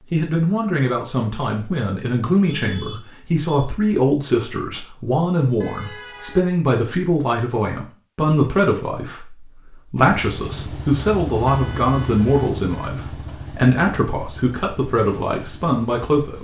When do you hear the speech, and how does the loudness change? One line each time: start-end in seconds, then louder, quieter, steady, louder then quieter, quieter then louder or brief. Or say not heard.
0.1-16.3 steady.